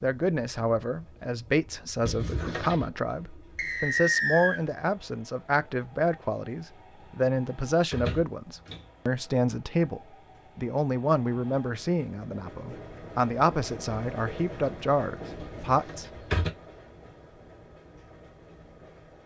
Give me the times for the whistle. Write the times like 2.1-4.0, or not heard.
3.5-4.6.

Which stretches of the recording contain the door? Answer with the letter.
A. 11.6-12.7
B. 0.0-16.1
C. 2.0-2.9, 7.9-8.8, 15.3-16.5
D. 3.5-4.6
C.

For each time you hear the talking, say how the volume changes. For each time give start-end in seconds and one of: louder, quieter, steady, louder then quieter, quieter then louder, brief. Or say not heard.
0.0-16.1 steady.